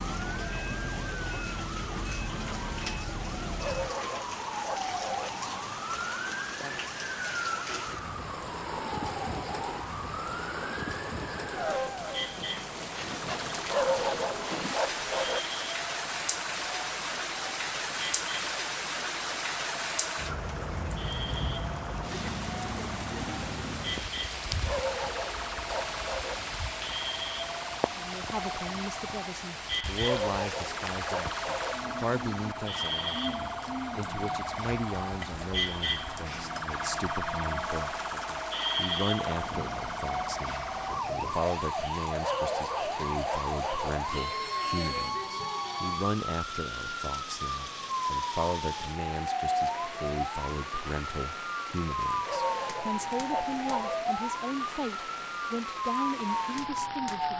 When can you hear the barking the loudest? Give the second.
14 s.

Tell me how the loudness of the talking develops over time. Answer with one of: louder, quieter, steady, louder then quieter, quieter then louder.
steady.